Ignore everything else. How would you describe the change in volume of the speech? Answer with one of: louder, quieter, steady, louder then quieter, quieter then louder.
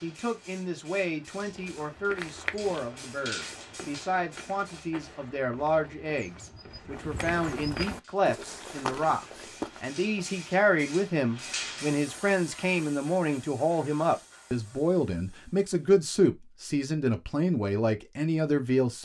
louder.